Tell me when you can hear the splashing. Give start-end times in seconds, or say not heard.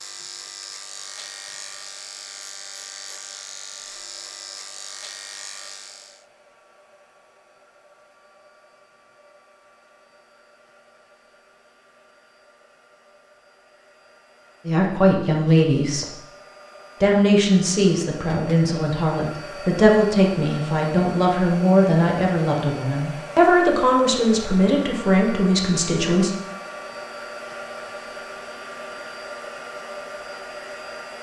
not heard.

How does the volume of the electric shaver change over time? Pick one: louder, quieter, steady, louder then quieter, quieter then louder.
steady.